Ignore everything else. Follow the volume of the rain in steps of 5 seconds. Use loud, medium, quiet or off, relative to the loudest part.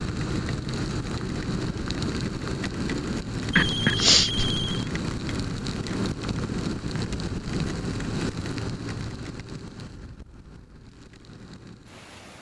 loud, loud, quiet.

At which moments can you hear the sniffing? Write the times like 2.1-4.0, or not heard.
3.5-4.5.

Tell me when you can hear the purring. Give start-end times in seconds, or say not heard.
not heard.